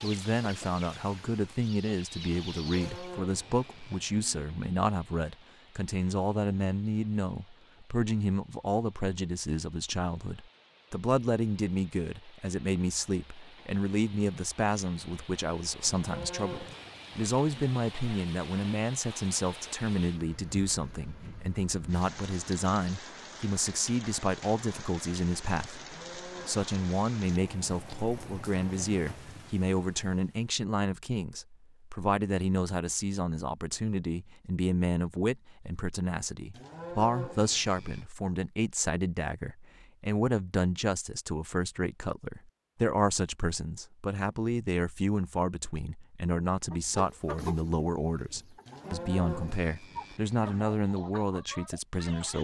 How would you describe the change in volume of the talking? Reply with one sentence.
The volume of the talking stays about the same.